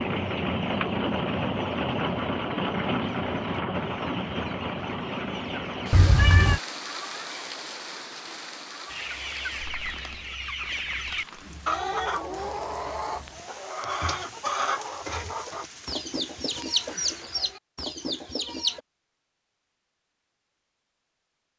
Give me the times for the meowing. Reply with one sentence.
You can hear the meowing from 5.9 to 6.6 s.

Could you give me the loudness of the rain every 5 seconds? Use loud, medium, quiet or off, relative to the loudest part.
loud, medium, quiet, quiet, off.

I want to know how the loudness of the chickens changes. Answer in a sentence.
The volume of the chickens goes up.